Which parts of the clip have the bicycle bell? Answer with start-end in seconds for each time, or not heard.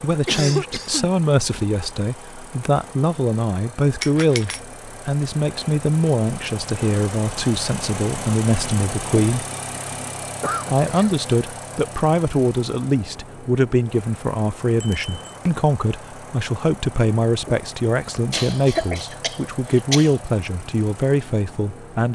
4.0-4.6, 14.8-15.3.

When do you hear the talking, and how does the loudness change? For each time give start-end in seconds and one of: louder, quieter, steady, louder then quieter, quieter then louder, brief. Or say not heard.
0.0-9.4 steady
10.7-22.1 steady.